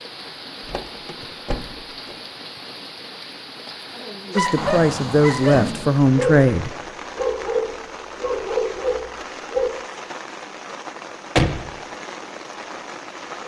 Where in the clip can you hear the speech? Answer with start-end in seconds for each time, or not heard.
4.3-6.8.